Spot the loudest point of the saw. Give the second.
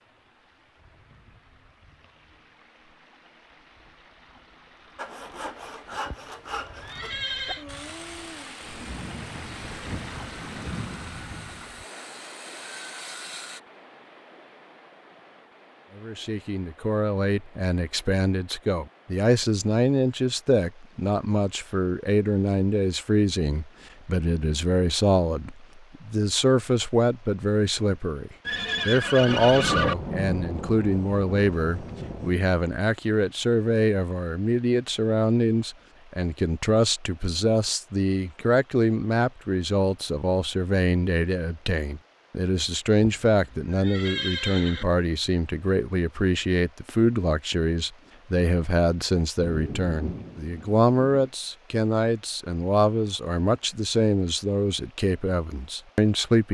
6 s.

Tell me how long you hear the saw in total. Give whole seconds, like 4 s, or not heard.
9 s.